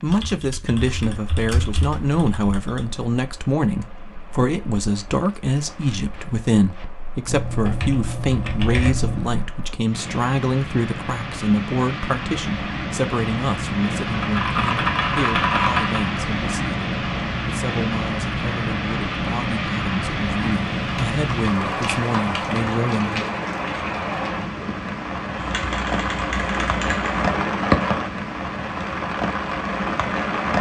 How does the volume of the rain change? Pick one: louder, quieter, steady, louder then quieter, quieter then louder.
louder.